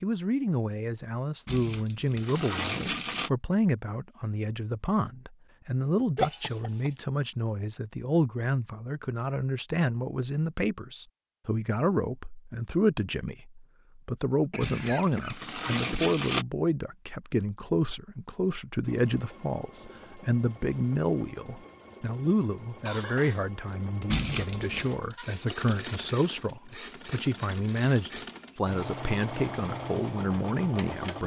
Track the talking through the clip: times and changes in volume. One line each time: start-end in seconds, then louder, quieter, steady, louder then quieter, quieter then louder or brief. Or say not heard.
0.0-31.2 steady.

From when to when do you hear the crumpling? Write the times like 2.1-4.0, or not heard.
1.4-3.3, 14.6-16.4, 24.1-24.9.